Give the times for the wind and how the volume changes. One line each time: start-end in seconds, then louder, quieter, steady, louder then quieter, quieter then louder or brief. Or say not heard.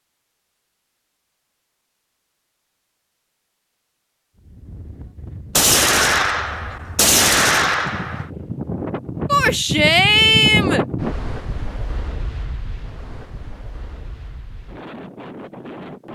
4.3-16.1 louder then quieter.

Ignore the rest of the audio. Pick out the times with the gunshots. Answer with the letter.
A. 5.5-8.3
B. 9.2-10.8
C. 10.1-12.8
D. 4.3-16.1
A.